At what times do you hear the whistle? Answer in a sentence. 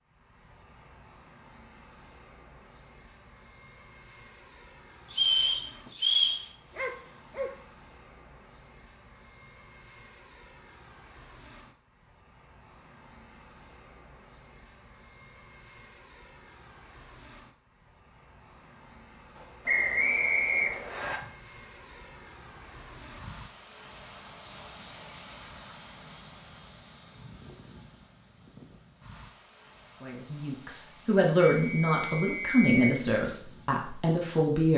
The whistle can be heard from 5.1 to 6.4 s, from 19.6 to 21.2 s and from 31.4 to 33.0 s.